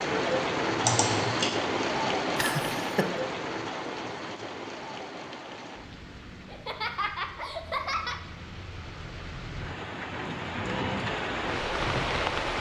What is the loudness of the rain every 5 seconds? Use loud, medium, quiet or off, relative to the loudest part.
loud, quiet, loud.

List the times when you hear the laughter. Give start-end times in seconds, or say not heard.
2.4-3.0, 6.5-8.2.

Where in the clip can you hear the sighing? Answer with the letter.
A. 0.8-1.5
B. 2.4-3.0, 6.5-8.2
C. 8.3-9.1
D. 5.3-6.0
A.